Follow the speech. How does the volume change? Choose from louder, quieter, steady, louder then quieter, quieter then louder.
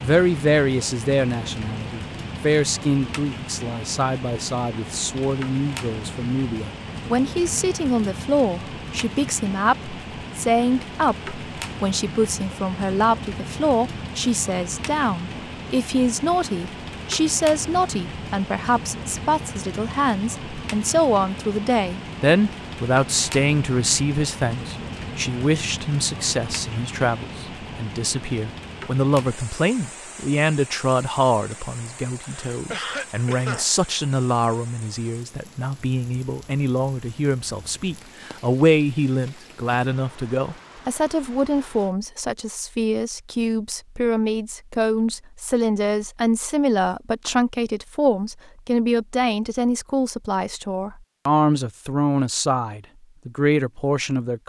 steady.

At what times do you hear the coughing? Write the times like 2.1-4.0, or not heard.
32.2-33.7.